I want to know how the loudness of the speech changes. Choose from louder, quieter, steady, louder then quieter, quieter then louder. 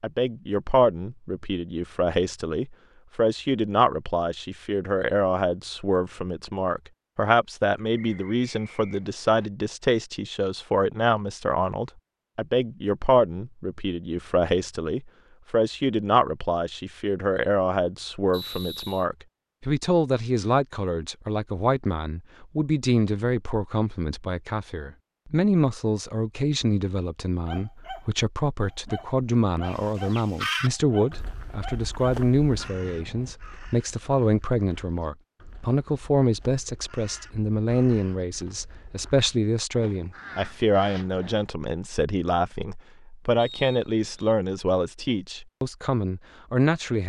steady.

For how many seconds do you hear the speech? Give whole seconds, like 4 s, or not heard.
47 s.